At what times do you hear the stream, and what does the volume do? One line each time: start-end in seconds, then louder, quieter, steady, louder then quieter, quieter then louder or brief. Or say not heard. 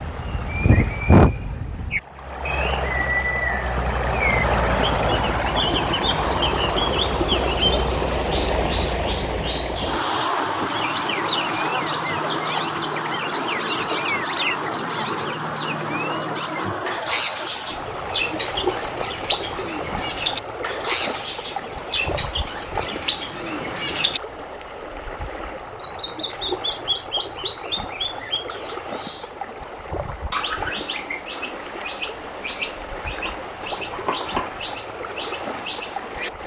0.0-36.4 quieter.